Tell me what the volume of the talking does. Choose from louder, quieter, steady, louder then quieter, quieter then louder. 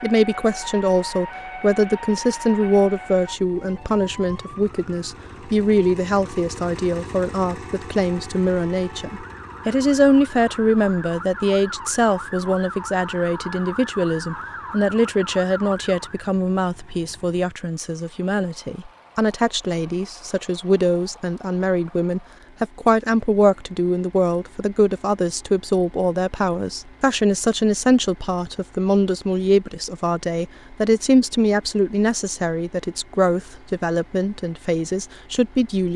steady.